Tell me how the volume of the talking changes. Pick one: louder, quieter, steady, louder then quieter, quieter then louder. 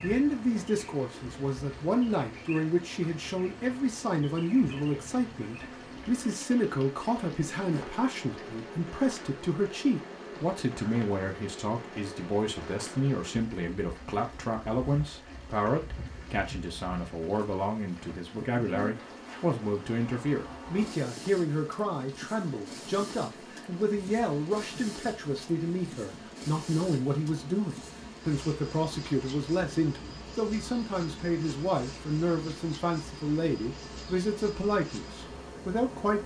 steady.